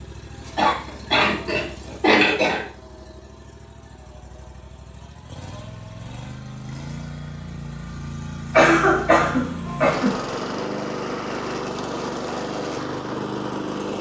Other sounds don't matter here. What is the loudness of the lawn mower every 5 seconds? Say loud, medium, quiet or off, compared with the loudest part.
quiet, medium, loud.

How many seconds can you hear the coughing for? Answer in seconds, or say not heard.
4 s.